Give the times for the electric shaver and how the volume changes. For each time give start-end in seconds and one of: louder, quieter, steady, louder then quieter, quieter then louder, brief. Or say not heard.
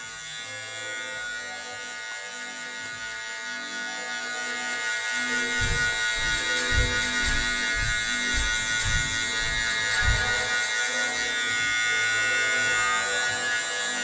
0.0-13.9 louder.